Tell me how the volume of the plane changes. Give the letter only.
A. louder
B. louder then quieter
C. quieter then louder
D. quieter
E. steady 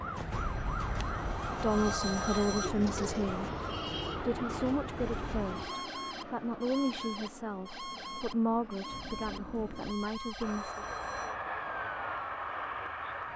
C.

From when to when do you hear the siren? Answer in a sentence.
You can hear the siren from 0.0 to 13.3 s.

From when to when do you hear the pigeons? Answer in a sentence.
You can hear the pigeons from 2.6 to 4.2 s.